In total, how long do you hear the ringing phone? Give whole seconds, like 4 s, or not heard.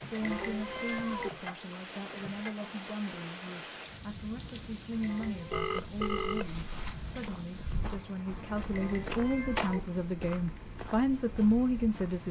2 s.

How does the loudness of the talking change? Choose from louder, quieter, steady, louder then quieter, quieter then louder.
louder.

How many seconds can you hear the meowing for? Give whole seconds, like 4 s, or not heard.
3 s.